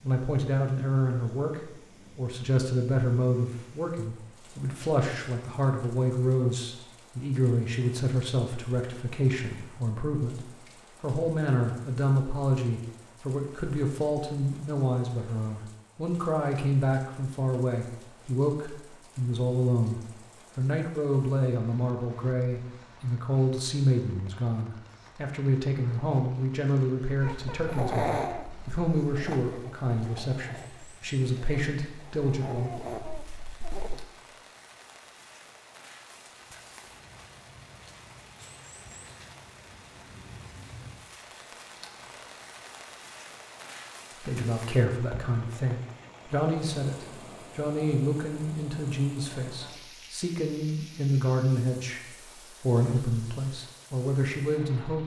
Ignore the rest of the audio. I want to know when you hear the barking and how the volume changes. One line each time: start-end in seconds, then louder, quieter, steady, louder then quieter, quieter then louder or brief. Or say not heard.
27.2-34.0 quieter then louder.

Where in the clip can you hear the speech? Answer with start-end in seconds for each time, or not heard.
0.0-32.7, 44.2-55.0.